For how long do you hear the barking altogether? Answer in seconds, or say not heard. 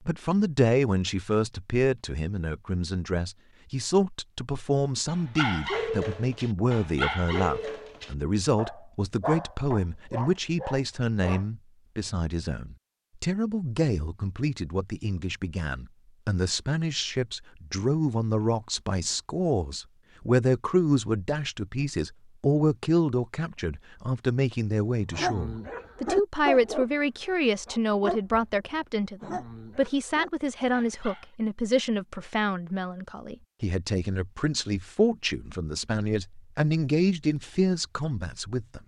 12 s.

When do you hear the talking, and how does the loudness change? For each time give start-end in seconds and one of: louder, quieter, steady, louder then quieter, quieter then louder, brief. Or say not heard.
0.1-38.8 steady.